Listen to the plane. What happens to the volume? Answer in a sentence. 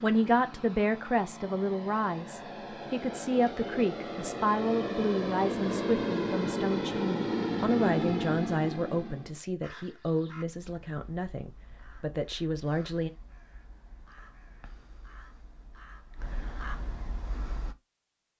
The volume of the plane goes up.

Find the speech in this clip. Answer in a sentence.
The speech can be heard from 0.0 to 13.1 s.